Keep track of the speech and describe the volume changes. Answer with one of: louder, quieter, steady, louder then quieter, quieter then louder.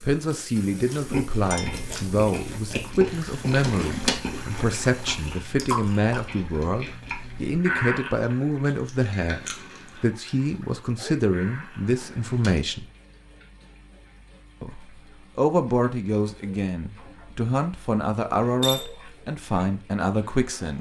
steady.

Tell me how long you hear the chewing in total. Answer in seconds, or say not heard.
12 s.